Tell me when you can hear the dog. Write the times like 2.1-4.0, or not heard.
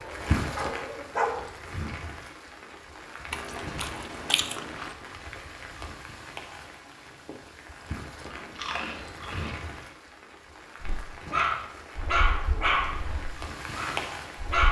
0.0-1.4, 10.8-14.6.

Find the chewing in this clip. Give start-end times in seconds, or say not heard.
3.3-5.0, 8.2-9.9.